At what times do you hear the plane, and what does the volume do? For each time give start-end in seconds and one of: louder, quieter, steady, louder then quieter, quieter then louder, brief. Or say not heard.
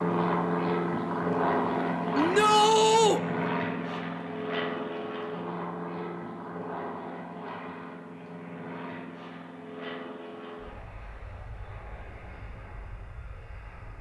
0.0-13.9 quieter.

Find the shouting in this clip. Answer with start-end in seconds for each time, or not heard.
2.1-3.2.